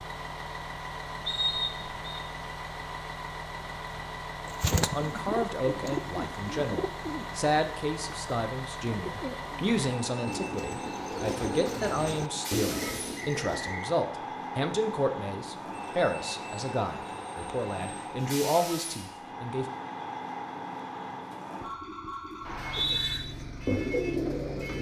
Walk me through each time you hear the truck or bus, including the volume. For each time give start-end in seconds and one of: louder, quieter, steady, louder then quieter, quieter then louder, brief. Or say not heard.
0.0-24.7 steady.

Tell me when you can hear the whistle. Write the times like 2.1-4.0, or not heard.
1.2-2.2, 12.8-13.9, 22.4-23.2.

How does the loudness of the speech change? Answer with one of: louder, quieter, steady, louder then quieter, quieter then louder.
steady.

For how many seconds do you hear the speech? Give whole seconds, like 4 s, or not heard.
15 s.